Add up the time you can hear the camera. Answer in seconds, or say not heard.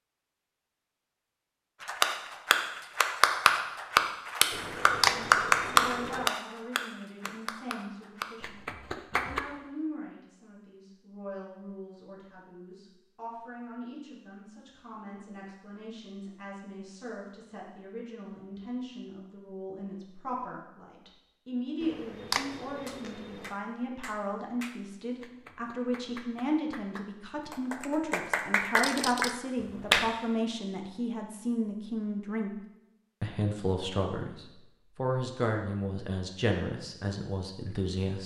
4 s.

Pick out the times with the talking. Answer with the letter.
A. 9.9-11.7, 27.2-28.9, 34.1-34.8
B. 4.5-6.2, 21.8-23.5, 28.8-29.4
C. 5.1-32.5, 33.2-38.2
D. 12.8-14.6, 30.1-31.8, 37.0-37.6
C.